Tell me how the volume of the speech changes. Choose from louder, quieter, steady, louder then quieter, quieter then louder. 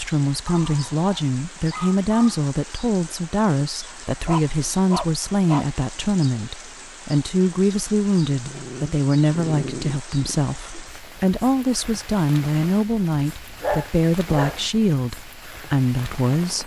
steady.